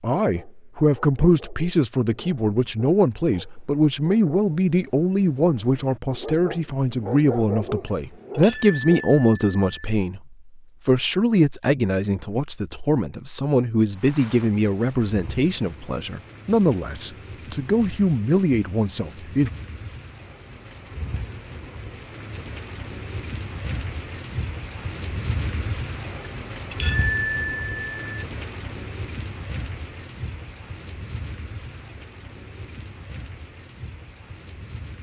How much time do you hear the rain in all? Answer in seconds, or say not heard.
21 s.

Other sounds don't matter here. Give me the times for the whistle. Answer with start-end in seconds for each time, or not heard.
not heard.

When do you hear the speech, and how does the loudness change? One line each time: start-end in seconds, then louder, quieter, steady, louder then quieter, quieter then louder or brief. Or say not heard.
0.0-19.5 steady.